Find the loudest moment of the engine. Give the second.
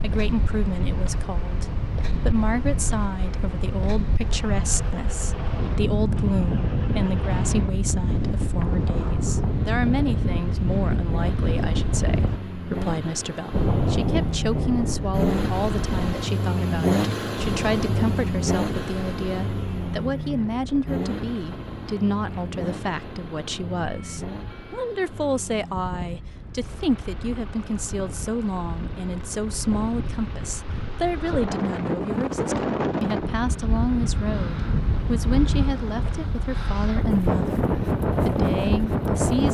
17 s.